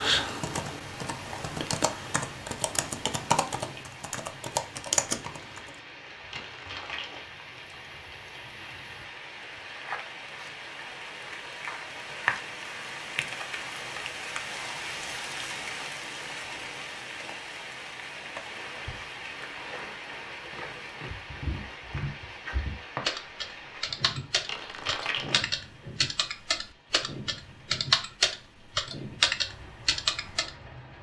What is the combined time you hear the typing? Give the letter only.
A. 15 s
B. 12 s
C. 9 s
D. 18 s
A.